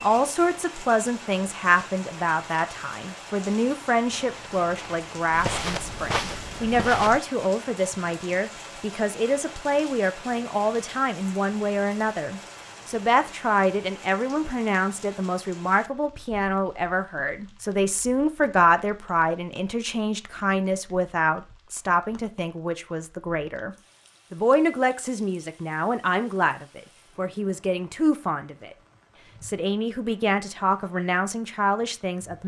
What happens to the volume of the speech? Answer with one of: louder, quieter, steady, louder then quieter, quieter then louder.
steady.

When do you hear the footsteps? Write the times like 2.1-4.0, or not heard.
4.2-7.2.